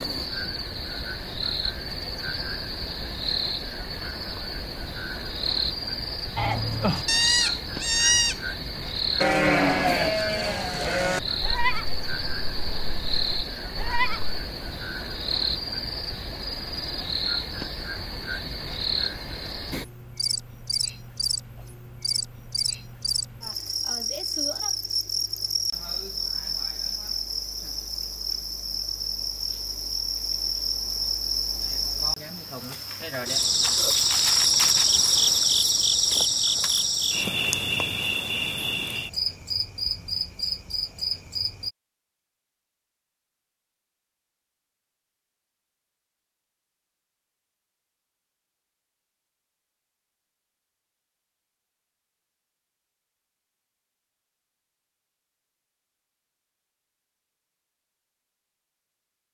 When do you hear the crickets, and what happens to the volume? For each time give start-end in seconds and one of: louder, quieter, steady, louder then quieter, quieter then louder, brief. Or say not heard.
0.0-41.7 louder.